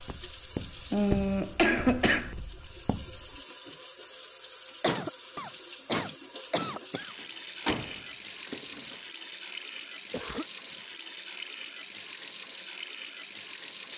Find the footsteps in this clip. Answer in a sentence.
You can hear the footsteps from 0.0 to 3.4 s.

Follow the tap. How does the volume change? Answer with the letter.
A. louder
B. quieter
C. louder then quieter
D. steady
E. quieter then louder
A.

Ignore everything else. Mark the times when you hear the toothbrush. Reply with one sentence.
You can't hear the toothbrush here.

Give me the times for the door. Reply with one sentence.
The door can be heard from 7.2 to 8.9 s.